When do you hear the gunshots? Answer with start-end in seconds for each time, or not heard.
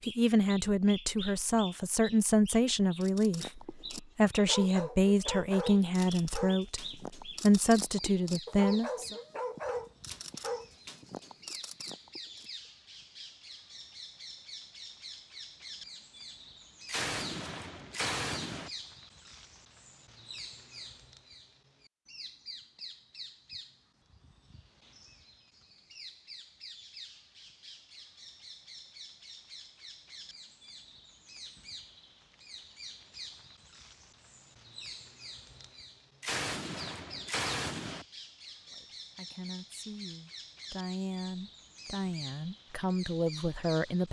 16.9-18.7, 36.2-38.0.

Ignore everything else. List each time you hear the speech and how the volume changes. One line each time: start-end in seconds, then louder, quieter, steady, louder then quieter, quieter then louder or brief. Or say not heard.
0.0-9.2 steady
38.7-44.0 louder.